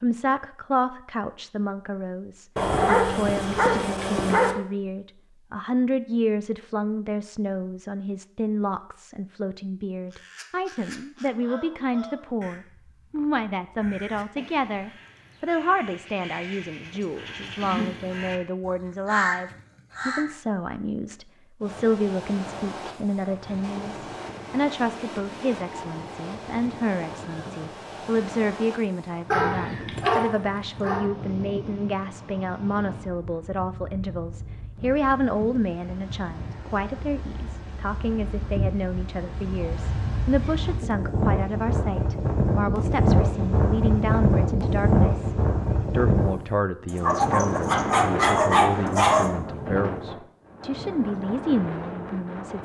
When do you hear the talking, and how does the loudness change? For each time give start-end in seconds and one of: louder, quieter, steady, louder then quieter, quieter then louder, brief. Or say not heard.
0.0-52.5 steady.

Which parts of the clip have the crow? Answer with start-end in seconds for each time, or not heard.
10.1-20.4.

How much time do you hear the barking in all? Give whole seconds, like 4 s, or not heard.
6 s.